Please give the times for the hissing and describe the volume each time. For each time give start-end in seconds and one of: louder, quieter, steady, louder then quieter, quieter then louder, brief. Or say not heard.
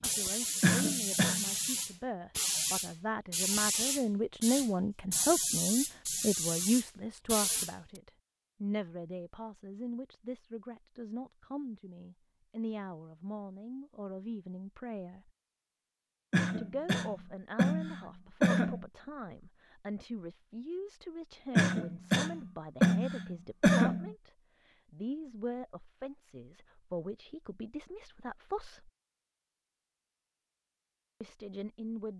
0.0-8.0 steady.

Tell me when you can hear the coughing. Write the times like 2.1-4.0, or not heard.
0.6-1.4, 16.3-18.9, 21.6-24.1.